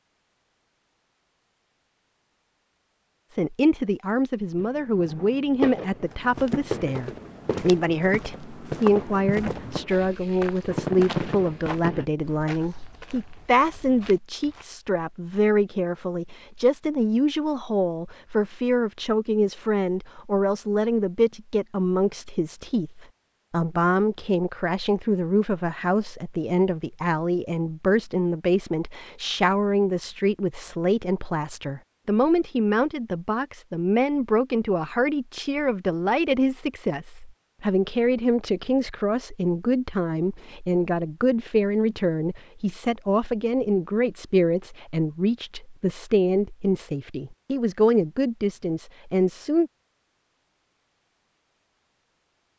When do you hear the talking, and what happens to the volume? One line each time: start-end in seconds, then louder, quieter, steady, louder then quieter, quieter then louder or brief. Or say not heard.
3.4-49.7 steady.